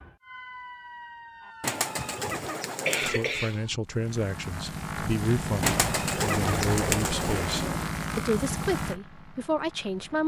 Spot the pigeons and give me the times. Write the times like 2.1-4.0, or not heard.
1.6-3.3, 5.6-7.8.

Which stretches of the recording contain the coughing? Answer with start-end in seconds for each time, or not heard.
1.9-3.8.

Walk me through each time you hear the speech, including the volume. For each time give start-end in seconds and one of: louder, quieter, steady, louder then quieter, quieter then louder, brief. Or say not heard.
3.0-10.2 steady.